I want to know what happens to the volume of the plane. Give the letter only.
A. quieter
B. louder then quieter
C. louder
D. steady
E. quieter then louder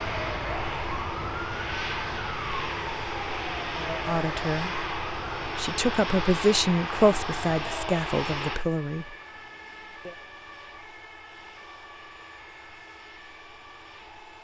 A.